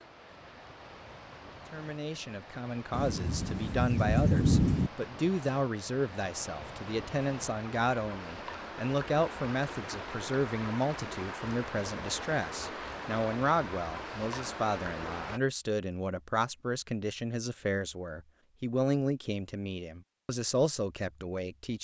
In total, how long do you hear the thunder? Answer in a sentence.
The thunder can be heard for 2 seconds in total.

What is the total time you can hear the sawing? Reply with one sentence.
The sawing can't be heard in this clip.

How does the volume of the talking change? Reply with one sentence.
The loudness of the talking stays about the same.